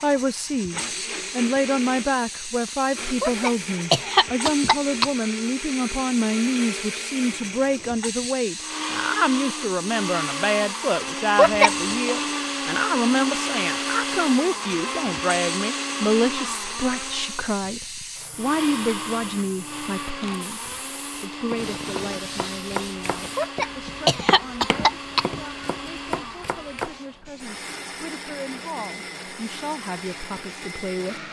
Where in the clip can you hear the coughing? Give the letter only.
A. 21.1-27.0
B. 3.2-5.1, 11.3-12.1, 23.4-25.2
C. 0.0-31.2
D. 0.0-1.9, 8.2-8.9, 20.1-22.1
B.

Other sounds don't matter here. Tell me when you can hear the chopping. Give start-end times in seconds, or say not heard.
21.1-27.0.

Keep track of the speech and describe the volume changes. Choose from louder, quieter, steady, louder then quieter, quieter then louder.
quieter.